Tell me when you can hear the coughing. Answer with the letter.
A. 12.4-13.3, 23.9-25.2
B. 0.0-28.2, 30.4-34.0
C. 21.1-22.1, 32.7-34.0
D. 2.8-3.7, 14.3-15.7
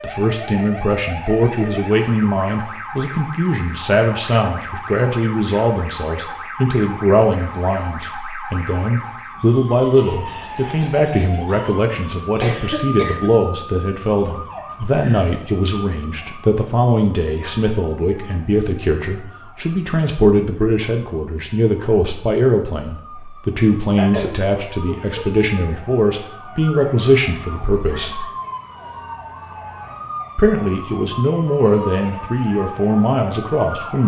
A.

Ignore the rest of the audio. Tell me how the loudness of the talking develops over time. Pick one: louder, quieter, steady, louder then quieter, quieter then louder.
steady.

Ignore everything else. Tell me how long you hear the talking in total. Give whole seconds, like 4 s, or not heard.
32 s.